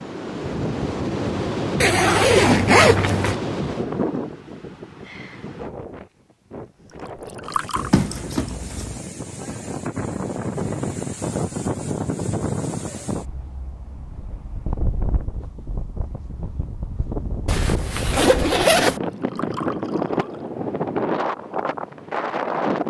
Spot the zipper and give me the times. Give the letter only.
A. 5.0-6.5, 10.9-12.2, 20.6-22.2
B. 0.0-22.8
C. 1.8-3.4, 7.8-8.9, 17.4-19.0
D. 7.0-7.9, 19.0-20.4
C.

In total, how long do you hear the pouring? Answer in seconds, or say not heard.
2 s.